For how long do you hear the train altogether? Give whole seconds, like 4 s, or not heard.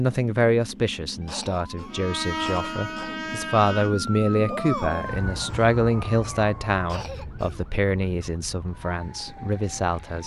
2 s.